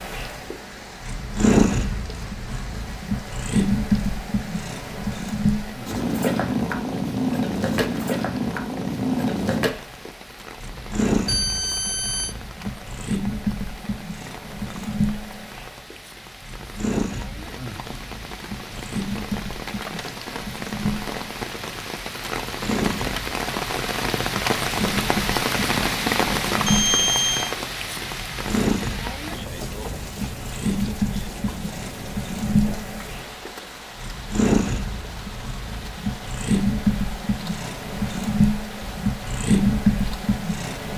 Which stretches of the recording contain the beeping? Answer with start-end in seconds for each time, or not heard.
11.2-12.3, 26.6-27.6.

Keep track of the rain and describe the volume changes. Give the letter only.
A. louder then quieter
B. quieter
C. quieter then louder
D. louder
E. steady
A.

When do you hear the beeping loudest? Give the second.
27 s.